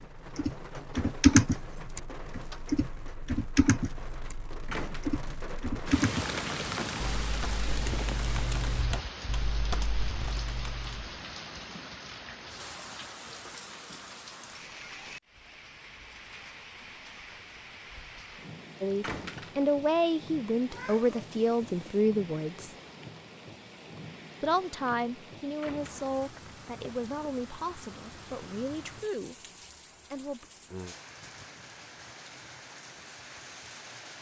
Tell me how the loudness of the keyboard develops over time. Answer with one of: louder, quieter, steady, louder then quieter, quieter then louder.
quieter.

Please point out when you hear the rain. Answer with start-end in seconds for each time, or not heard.
0.0-34.1.